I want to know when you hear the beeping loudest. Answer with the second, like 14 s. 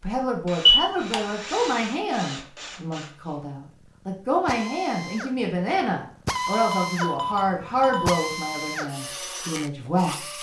1 s.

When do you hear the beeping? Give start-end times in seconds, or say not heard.
0.7-1.2, 6.3-8.2.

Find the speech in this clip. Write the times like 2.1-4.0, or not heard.
0.0-10.2.